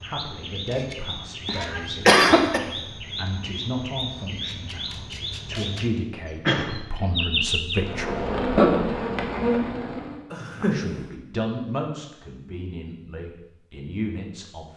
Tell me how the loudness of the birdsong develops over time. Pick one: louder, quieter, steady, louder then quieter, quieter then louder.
louder.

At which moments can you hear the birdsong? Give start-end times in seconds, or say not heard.
0.0-7.8.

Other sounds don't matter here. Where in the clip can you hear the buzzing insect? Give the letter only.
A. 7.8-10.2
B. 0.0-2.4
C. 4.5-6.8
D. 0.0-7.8
A.